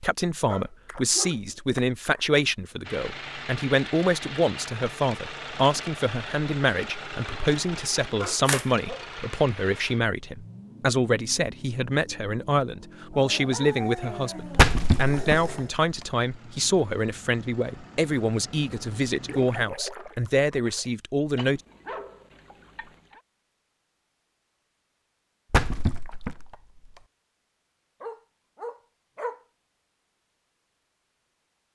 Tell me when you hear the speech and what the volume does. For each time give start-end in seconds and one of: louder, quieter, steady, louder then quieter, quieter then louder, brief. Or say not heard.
0.0-21.6 steady.